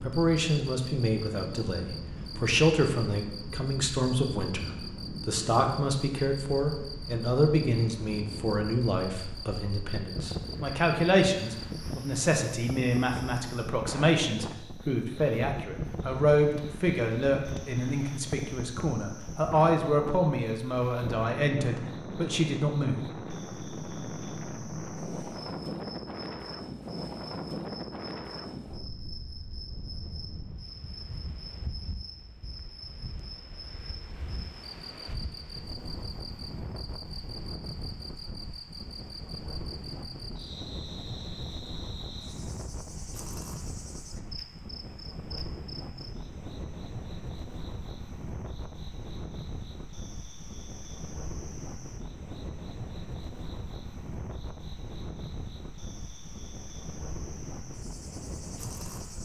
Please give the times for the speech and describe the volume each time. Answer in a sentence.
The speech can be heard from 0.0 to 23.1 s, at a steady volume.